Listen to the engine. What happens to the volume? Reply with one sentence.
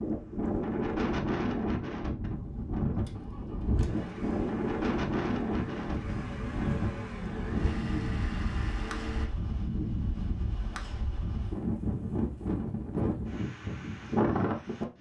The loudness of the engine goes down, then up.